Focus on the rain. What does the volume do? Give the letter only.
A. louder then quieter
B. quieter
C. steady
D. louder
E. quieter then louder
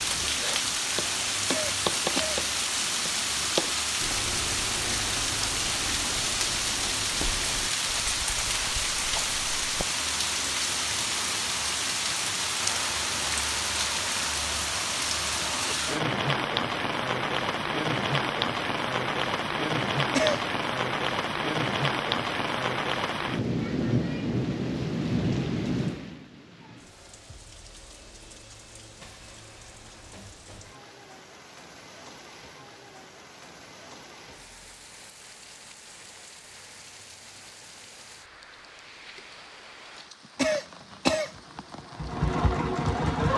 B.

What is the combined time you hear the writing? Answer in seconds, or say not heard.
10 s.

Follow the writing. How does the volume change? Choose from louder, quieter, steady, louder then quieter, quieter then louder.
quieter.